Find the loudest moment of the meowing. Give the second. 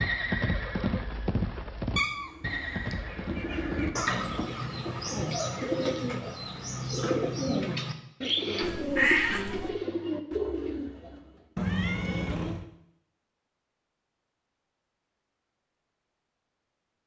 9 s.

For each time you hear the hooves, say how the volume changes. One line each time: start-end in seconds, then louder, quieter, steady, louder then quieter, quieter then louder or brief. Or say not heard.
0.0-5.2 quieter.